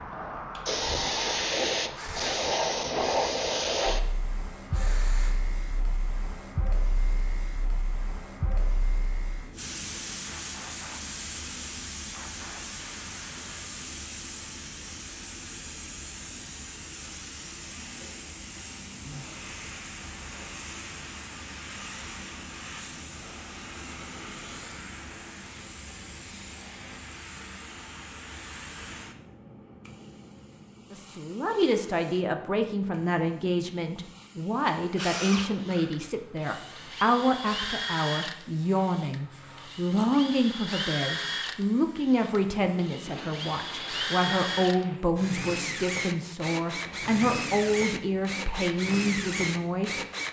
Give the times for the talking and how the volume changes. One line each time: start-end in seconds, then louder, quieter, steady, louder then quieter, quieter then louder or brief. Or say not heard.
30.9-50.0 steady.